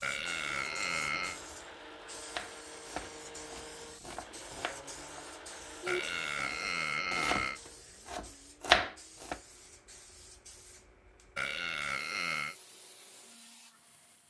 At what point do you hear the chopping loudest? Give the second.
9 s.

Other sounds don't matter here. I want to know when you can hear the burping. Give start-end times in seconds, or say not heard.
0.0-1.4, 5.8-7.6, 11.3-12.6.